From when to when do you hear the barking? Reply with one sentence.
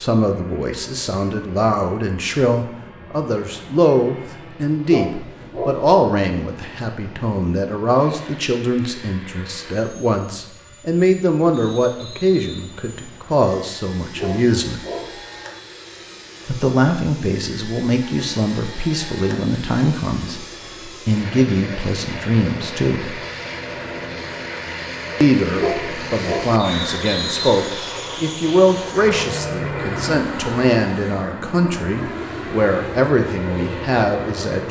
The barking can be heard from 4.8 to 5.8 s, from 14.2 to 15.2 s and from 25.6 to 26.6 s.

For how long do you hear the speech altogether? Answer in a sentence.
You can hear the speech for 31 seconds altogether.